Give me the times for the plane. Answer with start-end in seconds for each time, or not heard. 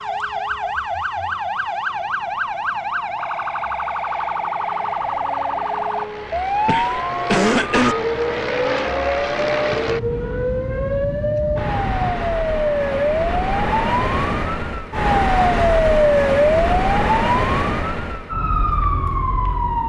0.0-12.2.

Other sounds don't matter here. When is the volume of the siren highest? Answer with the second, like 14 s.
16 s.